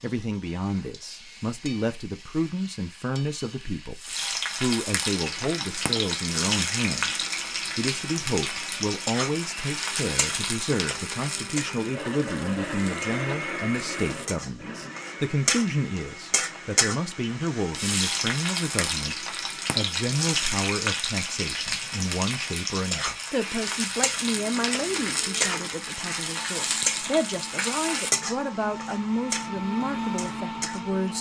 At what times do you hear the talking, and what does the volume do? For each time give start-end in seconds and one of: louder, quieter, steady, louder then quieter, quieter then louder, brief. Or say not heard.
0.0-31.1 steady.